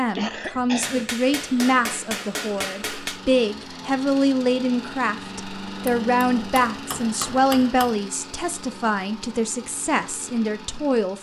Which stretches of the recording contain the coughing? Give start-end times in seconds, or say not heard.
0.1-1.1.